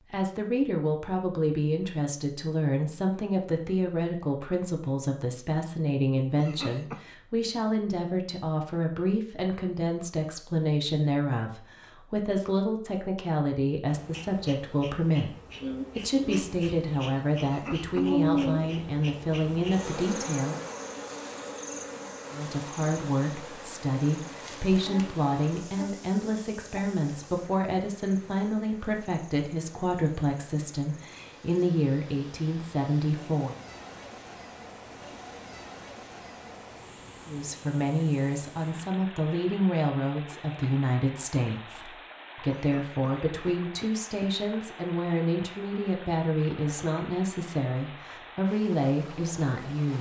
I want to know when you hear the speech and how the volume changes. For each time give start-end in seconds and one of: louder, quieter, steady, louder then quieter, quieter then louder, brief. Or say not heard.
0.1-20.6 steady
22.3-33.5 steady
37.2-49.9 steady.